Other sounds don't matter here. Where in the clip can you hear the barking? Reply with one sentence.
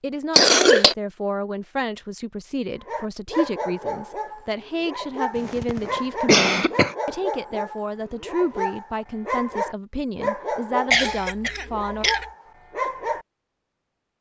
The barking can be heard from 2.8 to 13.2 s.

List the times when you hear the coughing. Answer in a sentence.
You can hear the coughing from 0.3 to 0.9 s, from 5.3 to 7.0 s and from 10.9 to 12.2 s.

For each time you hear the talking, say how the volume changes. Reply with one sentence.
You can hear the talking from 0.0 to 12.1 s, at a steady volume.